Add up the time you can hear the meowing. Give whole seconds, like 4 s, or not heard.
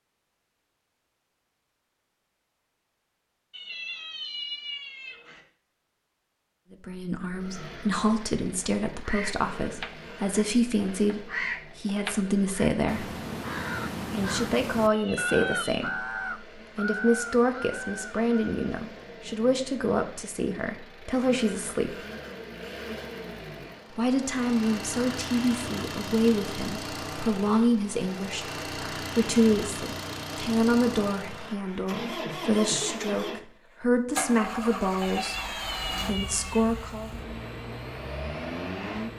5 s.